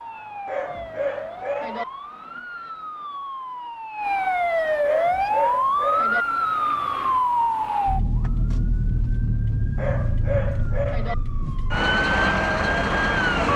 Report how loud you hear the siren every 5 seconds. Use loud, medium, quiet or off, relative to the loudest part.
medium, loud, loud.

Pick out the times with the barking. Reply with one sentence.
The barking can be heard from 0.5 to 1.9 s, from 4.8 to 6.2 s and from 9.8 to 11.2 s.